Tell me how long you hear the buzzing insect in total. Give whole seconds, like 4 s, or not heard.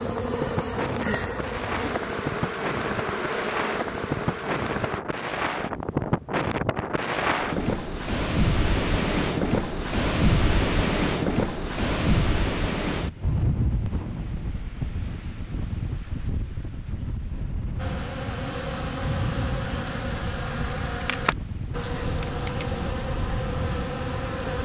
12 s.